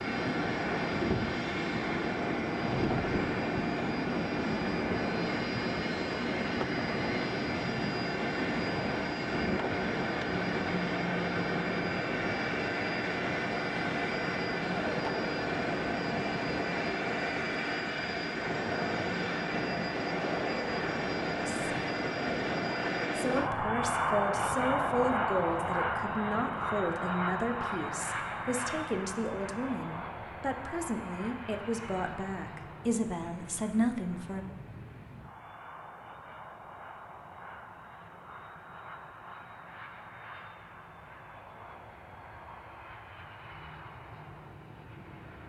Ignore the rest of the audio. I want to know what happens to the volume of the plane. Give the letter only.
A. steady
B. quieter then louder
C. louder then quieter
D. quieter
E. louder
D.